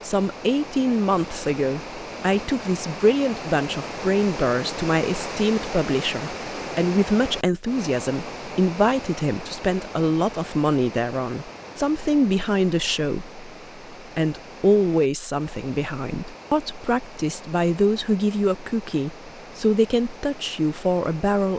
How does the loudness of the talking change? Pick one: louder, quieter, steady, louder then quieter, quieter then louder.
steady.